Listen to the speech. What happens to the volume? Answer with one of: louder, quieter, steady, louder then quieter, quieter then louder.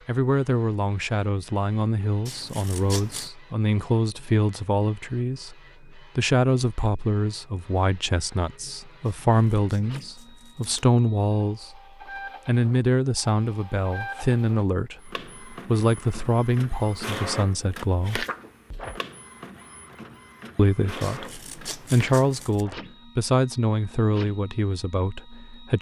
steady.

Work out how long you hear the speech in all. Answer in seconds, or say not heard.
23 s.